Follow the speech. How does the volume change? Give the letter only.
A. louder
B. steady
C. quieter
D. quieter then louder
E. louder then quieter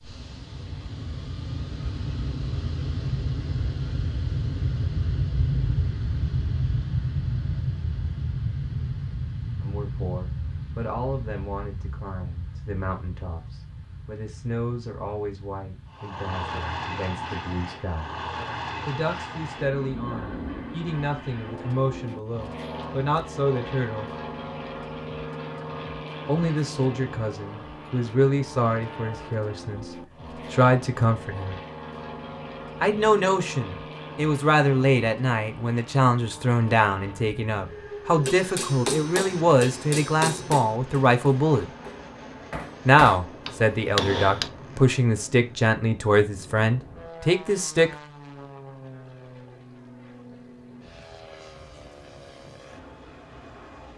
A.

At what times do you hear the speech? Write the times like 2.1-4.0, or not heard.
9.6-18.1, 18.9-24.1, 26.2-31.6, 32.8-41.6, 42.9-47.9.